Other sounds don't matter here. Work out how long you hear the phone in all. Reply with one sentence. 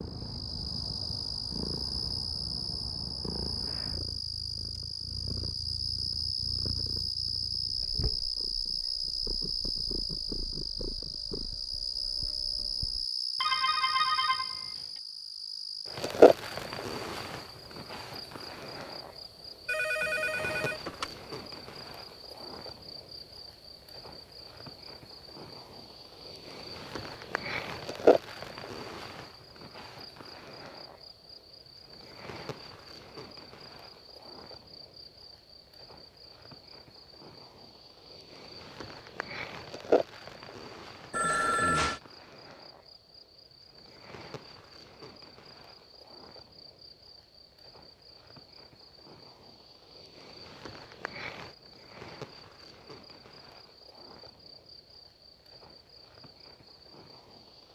The phone can be heard for 4 seconds in total.